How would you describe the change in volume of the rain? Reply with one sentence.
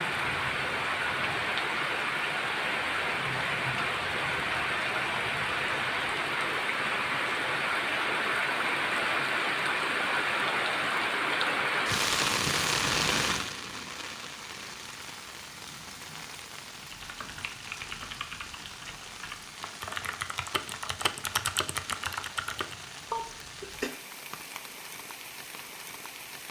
The loudness of the rain goes down.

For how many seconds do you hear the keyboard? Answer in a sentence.
The keyboard can be heard for 6 seconds in total.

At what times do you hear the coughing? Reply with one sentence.
The coughing can be heard from 23.1 to 23.9 s.